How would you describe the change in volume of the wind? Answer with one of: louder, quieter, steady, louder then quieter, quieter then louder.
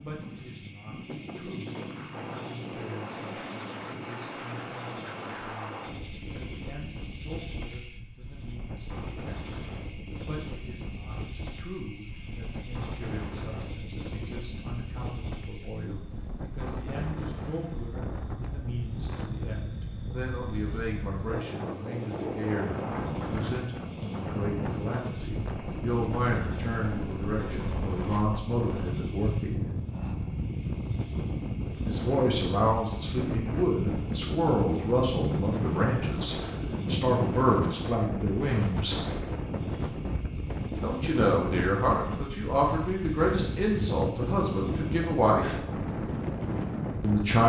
louder.